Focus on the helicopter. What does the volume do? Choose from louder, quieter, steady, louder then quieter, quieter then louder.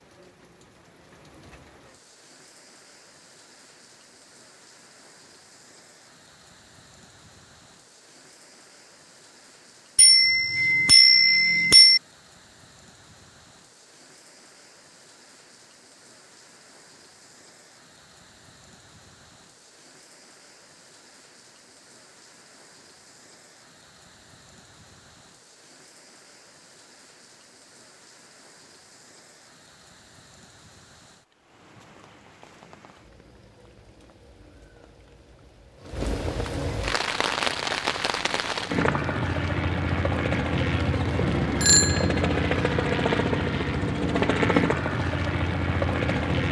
louder.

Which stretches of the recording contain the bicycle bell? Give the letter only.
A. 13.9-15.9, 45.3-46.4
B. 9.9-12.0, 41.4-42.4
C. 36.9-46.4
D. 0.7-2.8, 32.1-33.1
B.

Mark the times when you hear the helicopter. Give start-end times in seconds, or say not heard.
36.9-46.4.